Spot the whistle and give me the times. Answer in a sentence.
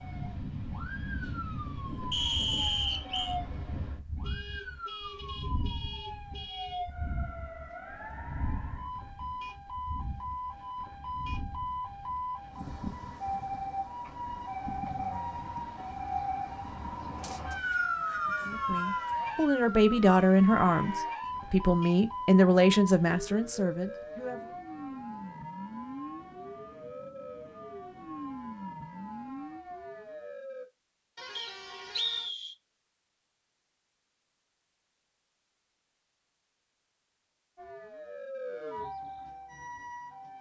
The whistle can be heard from 2.1 to 3.4 s, from 17.2 to 19.1 s and from 31.4 to 32.5 s.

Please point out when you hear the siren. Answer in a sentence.
The siren can be heard from 0.0 to 30.6 s and from 37.5 to 40.3 s.